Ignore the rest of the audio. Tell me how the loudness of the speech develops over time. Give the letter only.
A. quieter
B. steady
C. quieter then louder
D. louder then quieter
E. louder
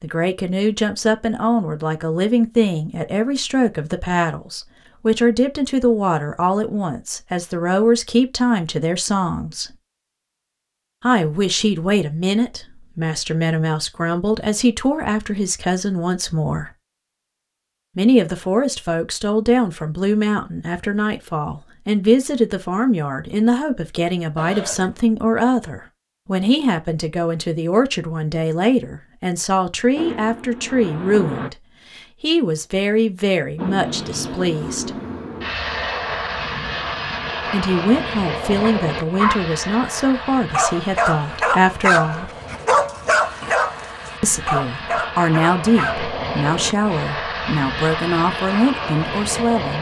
B.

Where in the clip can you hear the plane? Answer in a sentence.
You can hear the plane from 29.9 to 31.5 s and from 33.5 to 49.7 s.